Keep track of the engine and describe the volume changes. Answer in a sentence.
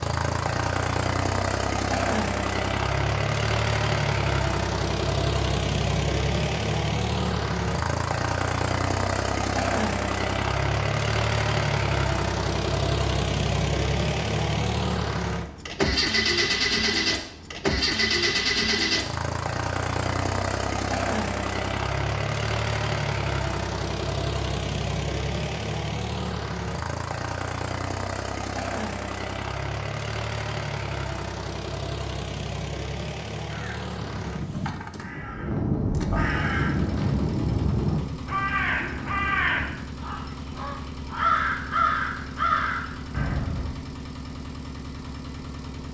The loudness of the engine goes down.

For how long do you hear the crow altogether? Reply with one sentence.
The crow can be heard for 10 seconds in total.